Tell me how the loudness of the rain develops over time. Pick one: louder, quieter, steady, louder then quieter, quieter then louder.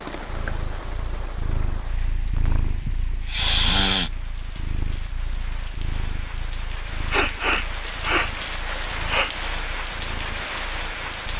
quieter then louder.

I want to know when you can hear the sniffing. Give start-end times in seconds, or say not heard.
2.9-4.1, 7.1-9.3.